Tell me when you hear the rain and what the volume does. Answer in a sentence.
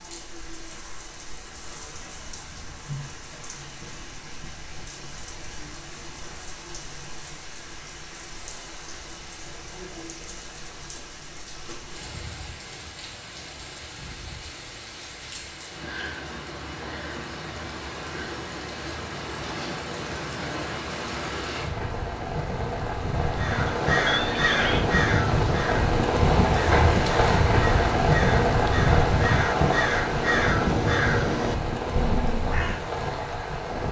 The rain can be heard from 0.0 to 33.8 s, getting louder.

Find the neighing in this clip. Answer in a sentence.
The neighing can be heard from 24.1 to 24.9 s.